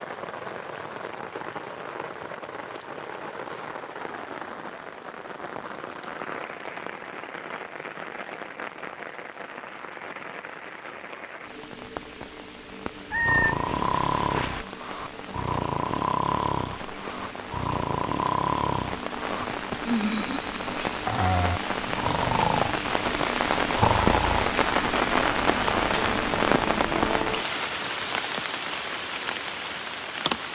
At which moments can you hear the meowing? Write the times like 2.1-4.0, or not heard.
13.1-14.7.